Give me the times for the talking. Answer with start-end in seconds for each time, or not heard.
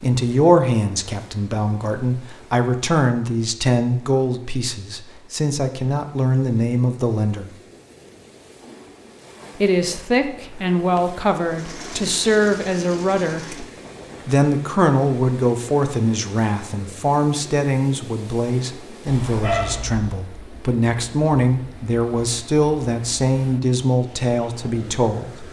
0.0-7.5, 9.6-13.7, 14.2-25.4.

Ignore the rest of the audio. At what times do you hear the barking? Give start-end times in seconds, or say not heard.
19.1-20.1.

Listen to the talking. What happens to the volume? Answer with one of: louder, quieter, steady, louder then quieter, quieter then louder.
steady.